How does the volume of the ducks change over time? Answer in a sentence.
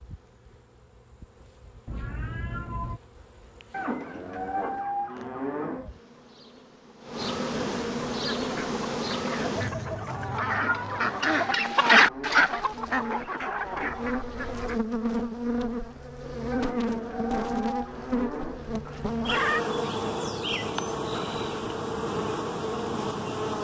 The volume of the ducks goes up, then down.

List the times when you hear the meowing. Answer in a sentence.
You can hear the meowing from 1.9 to 3.0 s, from 10.6 to 11.1 s and from 18.9 to 19.6 s.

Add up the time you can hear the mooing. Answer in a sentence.
The mooing can be heard for 6 seconds in total.